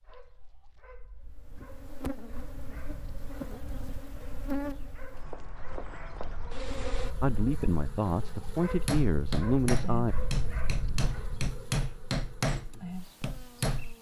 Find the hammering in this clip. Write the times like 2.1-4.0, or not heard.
8.7-13.9.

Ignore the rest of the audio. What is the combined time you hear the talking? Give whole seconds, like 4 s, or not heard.
3 s.